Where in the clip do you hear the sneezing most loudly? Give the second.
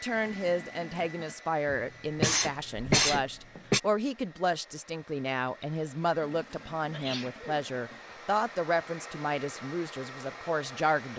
3 s.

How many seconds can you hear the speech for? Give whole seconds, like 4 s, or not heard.
11 s.